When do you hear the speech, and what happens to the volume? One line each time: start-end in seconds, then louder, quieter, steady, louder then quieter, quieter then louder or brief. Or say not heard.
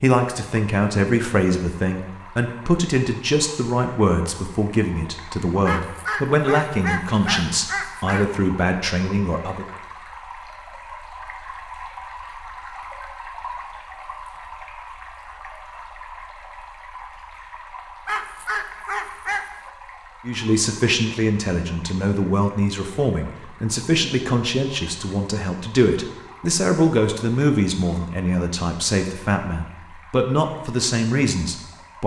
0.0-9.7 steady
20.2-32.0 steady.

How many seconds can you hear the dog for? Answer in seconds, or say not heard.
4 s.